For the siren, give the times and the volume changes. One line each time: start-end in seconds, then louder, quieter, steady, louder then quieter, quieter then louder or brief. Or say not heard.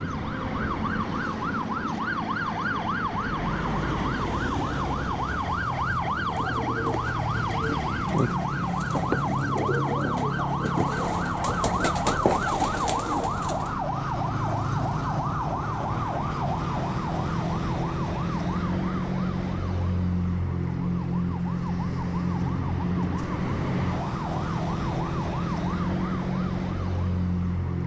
0.0-27.8 steady.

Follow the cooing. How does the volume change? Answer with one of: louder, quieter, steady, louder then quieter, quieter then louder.
louder.